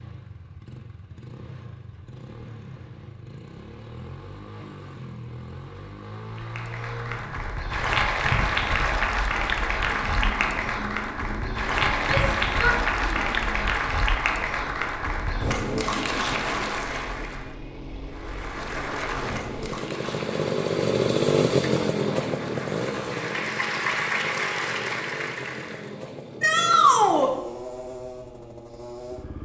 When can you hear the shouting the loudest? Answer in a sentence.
The volume of the shouting peaks at 27 seconds.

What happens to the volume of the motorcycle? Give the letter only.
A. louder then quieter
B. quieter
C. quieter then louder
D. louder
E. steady
A.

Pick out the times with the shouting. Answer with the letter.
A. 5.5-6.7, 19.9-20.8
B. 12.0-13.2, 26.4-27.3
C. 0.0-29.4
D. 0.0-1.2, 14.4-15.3
B.